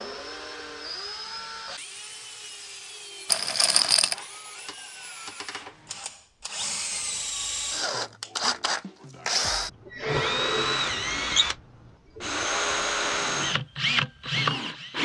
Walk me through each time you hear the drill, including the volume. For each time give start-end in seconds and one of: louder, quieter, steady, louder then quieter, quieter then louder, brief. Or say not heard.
0.0-14.9 louder.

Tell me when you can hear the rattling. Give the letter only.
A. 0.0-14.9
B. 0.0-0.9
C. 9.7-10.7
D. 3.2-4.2
D.